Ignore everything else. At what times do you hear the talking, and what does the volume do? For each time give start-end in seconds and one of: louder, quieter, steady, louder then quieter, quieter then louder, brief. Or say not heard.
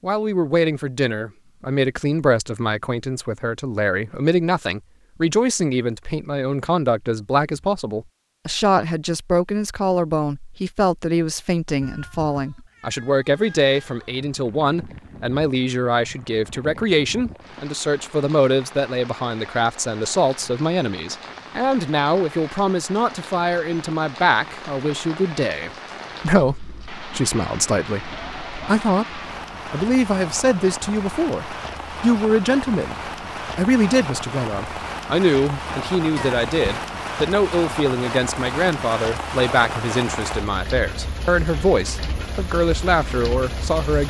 0.0-33.0 steady
33.5-44.0 steady.